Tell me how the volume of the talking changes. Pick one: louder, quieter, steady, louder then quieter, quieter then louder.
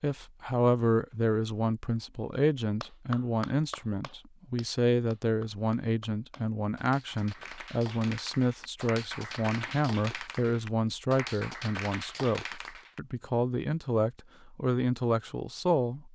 steady.